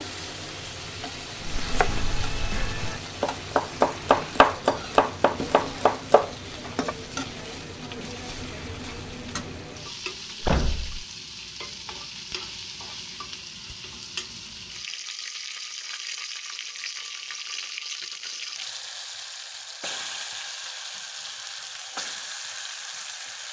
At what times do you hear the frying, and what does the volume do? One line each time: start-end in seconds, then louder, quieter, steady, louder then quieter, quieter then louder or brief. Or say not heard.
0.0-23.4 steady.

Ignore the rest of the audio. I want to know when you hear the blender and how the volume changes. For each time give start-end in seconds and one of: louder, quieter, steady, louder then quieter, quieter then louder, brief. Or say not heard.
not heard.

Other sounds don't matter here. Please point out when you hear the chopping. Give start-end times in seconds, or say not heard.
1.4-7.0.